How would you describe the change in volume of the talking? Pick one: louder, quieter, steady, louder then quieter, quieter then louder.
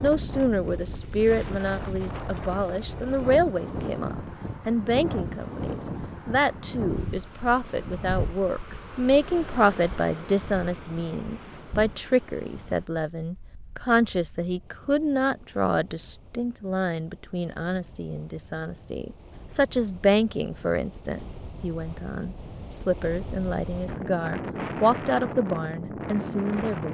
steady.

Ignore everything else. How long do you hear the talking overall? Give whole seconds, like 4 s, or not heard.
27 s.